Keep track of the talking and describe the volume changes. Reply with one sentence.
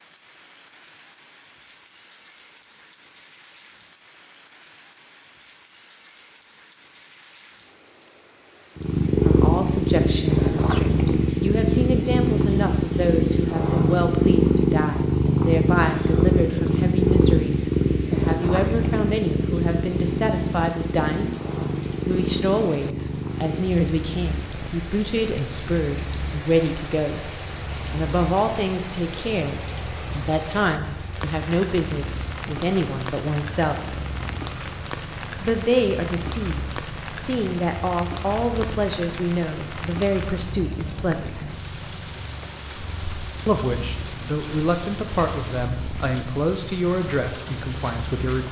The loudness of the talking stays about the same.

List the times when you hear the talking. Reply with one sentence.
You can hear the talking from 9.2 to 21.4 s, from 22.1 to 27.3 s, from 27.9 to 34.0 s, from 35.4 to 41.5 s and from 43.5 to 48.4 s.